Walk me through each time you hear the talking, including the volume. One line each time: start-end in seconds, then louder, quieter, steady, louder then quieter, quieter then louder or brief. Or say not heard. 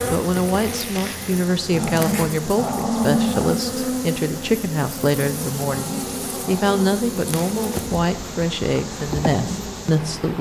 0.1-10.3 steady.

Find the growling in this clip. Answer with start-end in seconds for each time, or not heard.
1.7-3.5, 5.8-7.0.